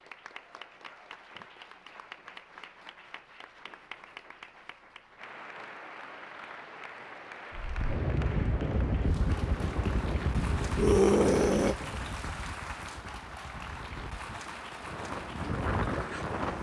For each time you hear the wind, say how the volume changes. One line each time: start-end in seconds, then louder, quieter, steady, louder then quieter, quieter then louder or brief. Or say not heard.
7.5-16.5 quieter then louder.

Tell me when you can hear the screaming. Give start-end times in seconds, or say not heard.
10.8-11.8.